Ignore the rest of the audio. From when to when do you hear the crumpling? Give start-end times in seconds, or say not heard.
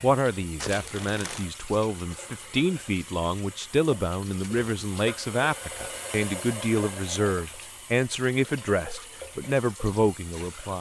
0.6-1.4.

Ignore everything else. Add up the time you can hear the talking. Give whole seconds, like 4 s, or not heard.
11 s.